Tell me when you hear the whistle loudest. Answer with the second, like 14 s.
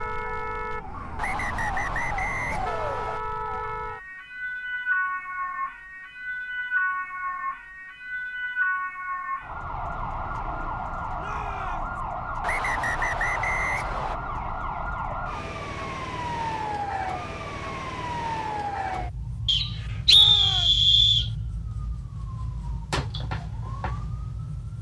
20 s.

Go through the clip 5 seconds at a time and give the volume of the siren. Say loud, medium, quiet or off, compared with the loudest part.
loud, loud, loud, loud, medium.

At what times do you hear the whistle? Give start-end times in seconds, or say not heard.
1.1-3.2, 12.4-14.2, 19.4-21.3.